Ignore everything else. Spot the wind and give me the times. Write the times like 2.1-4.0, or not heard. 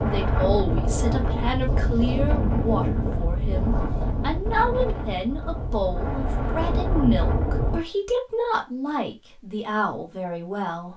0.0-7.8.